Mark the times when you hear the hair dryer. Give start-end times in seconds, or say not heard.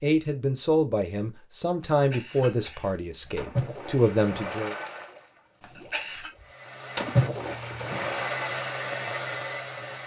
6.3-10.0.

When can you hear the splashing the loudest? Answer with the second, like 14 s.
7 s.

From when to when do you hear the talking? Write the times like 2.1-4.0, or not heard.
0.0-4.8.